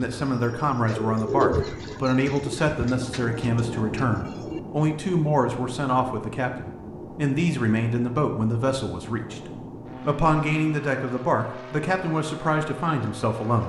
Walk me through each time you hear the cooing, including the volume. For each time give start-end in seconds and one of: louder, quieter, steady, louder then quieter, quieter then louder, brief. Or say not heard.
0.0-4.6 louder then quieter.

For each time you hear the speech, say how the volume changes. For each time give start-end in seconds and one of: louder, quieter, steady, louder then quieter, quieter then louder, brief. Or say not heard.
0.0-13.6 steady.